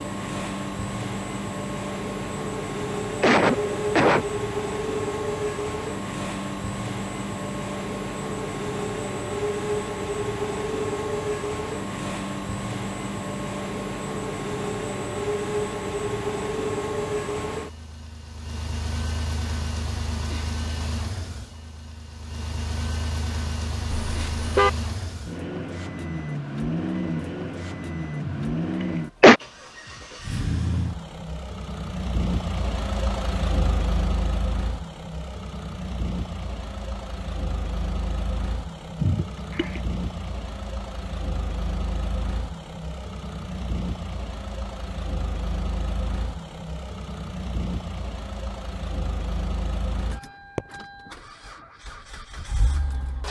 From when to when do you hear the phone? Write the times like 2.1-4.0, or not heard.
not heard.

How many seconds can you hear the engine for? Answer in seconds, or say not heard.
53 s.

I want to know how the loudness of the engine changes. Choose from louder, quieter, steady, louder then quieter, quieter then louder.
quieter.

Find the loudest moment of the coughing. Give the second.
29 s.